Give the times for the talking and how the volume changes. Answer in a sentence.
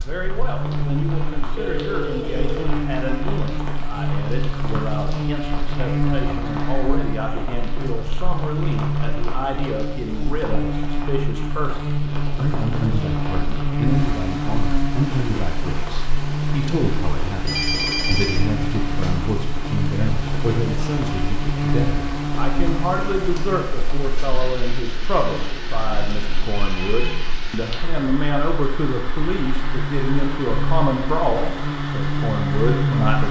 The talking can be heard from 0.0 to 33.2 s, getting louder.